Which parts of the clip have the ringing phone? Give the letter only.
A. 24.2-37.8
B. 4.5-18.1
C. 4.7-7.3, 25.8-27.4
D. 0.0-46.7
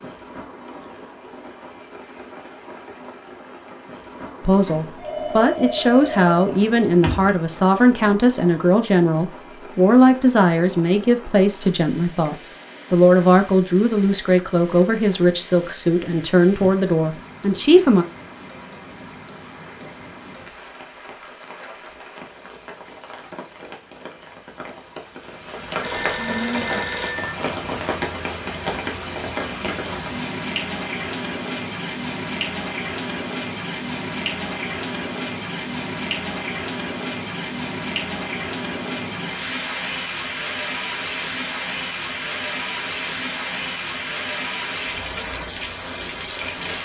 C.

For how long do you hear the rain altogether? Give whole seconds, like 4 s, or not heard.
47 s.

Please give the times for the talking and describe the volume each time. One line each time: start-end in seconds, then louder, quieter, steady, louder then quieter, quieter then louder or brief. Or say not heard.
4.5-18.1 steady.